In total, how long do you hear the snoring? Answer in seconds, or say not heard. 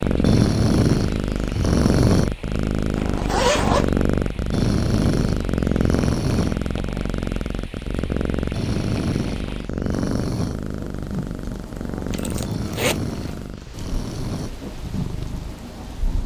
8 s.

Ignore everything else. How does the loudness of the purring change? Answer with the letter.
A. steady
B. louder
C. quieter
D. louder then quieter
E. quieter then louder
C.